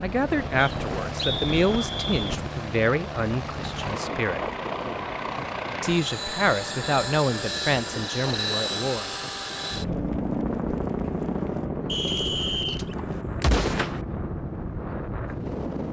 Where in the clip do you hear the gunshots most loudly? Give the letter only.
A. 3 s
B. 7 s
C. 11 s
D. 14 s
D.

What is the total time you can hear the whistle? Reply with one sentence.
The whistle can be heard for 3 seconds in total.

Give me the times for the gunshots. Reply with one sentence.
You can hear the gunshots from 12.1 to 14.0 s.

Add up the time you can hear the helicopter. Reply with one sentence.
You can hear the helicopter for 16 seconds altogether.